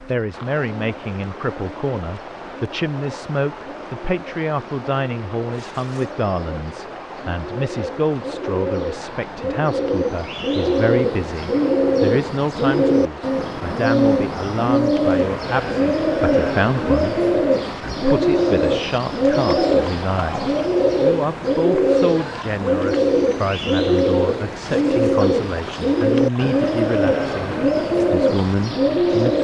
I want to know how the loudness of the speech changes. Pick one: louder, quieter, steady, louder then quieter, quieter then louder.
steady.